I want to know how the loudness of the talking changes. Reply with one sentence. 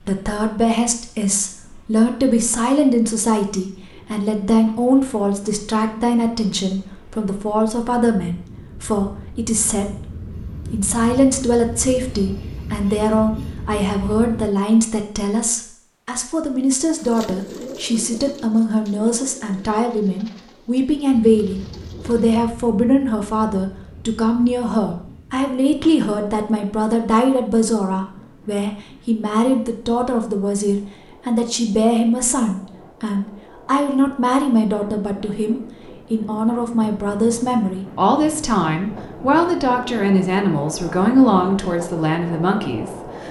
The loudness of the talking stays about the same.